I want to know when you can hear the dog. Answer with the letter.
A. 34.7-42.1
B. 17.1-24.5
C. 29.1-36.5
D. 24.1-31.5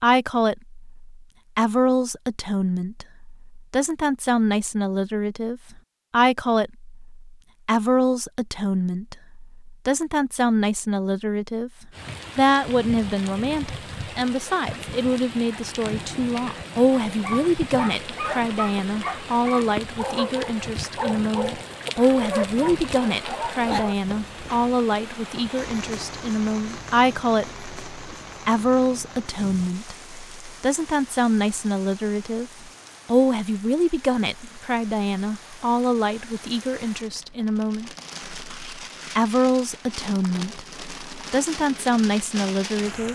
B.